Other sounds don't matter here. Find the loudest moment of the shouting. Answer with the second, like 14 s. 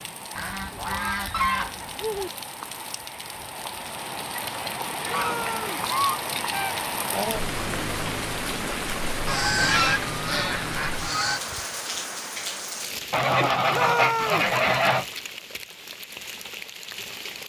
14 s.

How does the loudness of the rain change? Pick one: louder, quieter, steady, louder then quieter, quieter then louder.
louder then quieter.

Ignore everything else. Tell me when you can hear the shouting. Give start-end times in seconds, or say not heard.
5.0-5.8, 13.7-14.5.